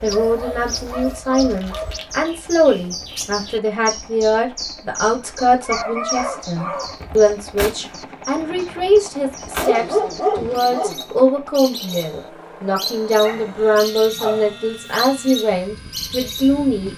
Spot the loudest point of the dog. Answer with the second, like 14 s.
10 s.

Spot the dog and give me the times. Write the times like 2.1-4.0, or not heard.
0.1-2.4, 5.3-7.0, 9.6-11.1, 13.2-15.3.